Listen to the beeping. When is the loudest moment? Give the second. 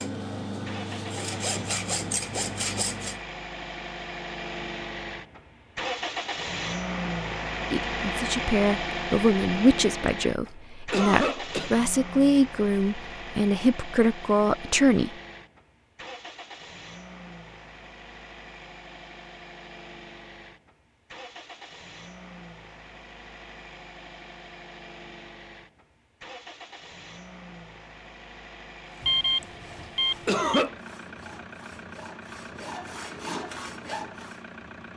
29 s.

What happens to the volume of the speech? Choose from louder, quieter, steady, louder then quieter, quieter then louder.
steady.